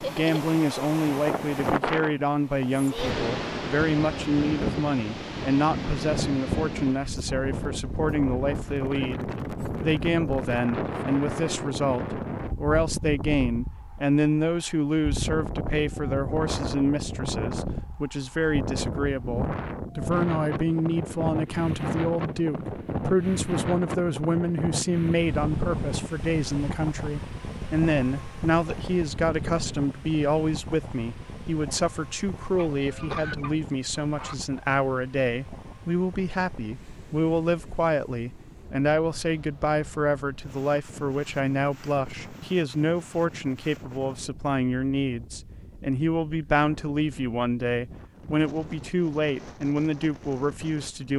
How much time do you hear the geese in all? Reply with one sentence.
You can hear the geese for 2 seconds altogether.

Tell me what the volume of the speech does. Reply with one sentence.
The volume of the speech stays about the same.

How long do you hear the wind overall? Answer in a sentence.
The wind can be heard for 51 seconds in total.